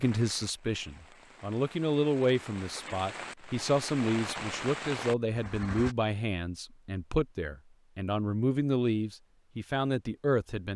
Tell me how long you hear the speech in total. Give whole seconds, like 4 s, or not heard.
11 s.